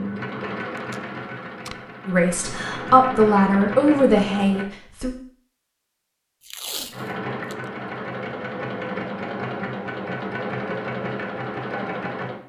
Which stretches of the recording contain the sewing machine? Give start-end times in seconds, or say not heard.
0.0-4.7, 6.9-12.4.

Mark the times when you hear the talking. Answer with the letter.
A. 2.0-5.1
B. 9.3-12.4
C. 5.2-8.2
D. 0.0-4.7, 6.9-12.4
A.